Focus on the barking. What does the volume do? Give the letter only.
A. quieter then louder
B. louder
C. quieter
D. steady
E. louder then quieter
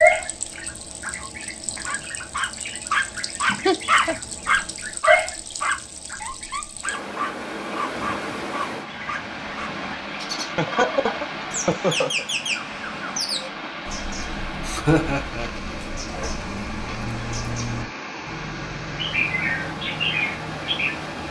C.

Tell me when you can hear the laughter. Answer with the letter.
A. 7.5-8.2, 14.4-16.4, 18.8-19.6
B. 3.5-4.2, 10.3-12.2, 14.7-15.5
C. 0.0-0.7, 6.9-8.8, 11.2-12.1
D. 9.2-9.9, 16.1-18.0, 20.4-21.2
B.